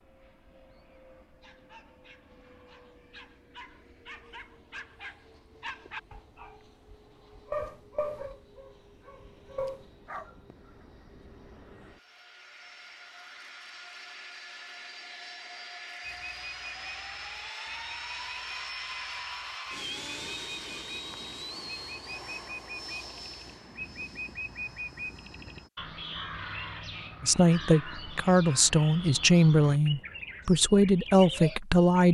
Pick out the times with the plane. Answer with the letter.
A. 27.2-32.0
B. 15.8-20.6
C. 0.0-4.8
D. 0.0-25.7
D.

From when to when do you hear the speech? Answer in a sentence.
You can hear the speech from 27.2 to 32.0 s.